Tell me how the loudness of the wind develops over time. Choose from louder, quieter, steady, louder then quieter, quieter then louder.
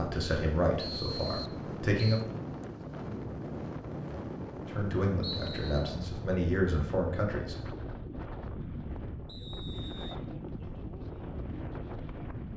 steady.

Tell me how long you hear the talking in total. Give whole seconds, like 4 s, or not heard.
5 s.